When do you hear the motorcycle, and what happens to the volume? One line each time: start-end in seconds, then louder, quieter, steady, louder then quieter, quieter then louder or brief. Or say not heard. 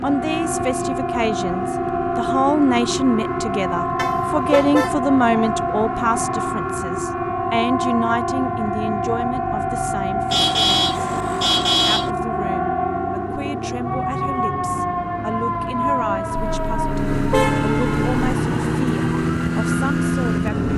0.0-20.7 louder.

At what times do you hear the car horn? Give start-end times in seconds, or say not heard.
4.0-4.9, 10.3-12.1, 16.4-18.3.